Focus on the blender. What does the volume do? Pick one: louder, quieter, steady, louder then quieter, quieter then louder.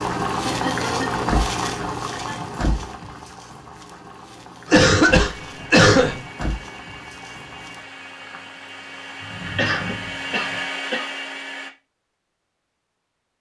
louder.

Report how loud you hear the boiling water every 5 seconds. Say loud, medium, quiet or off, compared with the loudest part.
loud, quiet, off.